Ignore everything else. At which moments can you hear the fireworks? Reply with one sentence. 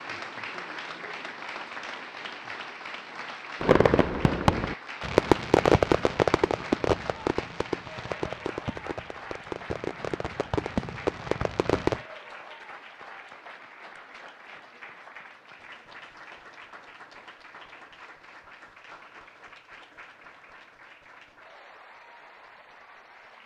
You can hear the fireworks from 3.6 to 12.0 s.